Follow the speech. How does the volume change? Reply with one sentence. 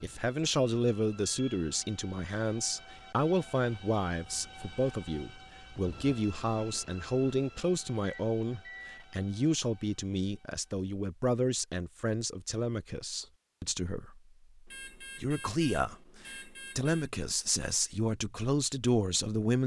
The volume of the speech stays about the same.